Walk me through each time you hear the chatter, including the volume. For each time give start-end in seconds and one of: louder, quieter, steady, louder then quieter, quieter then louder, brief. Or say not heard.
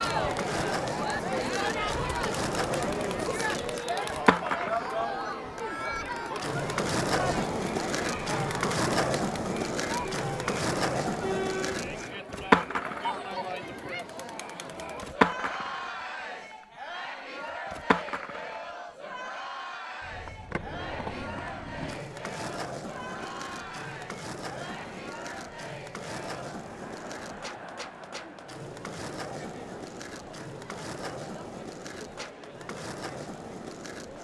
0.0-34.1 quieter.